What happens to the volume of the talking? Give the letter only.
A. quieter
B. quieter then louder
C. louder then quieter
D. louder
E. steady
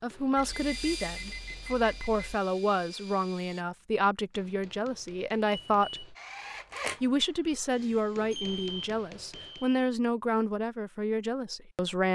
E.